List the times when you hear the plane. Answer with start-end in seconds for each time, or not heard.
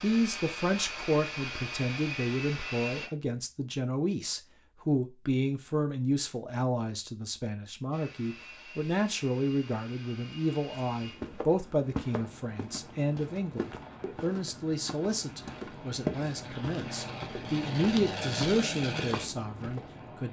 0.0-3.1, 7.9-20.2.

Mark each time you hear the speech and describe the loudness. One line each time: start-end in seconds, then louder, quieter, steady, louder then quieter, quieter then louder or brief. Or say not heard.
0.0-20.2 steady.